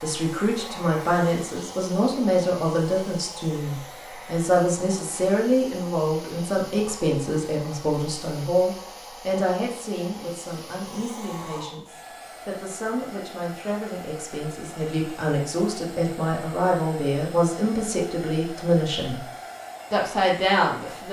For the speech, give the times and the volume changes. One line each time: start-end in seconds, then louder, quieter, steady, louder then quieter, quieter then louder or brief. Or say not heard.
0.0-19.2 quieter then louder
19.9-21.0 brief.